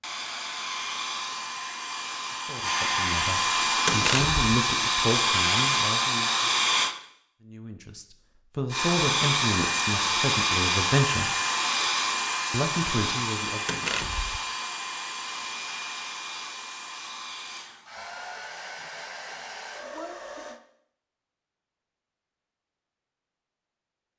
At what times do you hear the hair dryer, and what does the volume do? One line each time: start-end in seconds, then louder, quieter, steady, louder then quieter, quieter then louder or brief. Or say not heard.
0.0-7.0 louder
8.7-20.6 quieter.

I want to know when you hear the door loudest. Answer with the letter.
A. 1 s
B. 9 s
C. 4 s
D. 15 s
C.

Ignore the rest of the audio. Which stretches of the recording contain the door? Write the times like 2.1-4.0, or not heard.
3.9-4.4, 13.7-14.4.